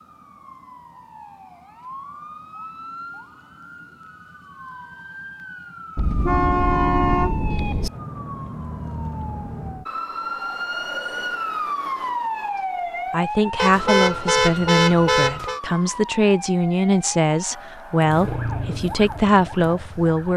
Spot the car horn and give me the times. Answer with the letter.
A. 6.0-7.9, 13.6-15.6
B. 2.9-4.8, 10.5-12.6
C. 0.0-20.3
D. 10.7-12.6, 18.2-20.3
A.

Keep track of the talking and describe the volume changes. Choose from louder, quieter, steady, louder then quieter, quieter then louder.
steady.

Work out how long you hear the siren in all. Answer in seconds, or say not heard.
20 s.